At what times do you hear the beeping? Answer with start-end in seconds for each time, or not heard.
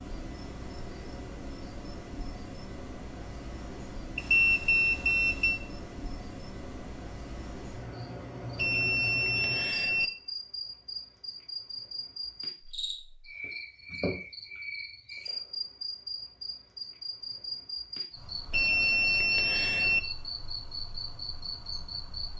4.2-5.6, 8.6-10.1, 18.5-20.0.